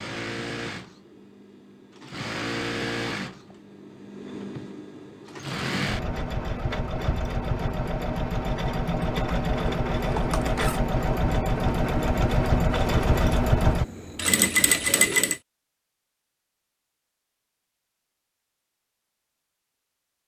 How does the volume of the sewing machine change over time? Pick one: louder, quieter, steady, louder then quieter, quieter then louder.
louder.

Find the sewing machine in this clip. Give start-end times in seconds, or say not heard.
0.0-15.4.